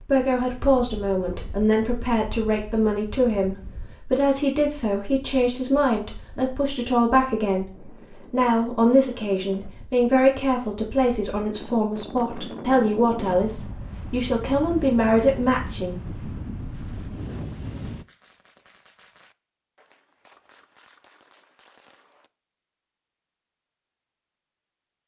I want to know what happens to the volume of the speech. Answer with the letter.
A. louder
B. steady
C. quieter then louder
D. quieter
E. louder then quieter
B.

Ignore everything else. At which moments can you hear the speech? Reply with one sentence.
You can hear the speech from 0.0 to 16.1 s.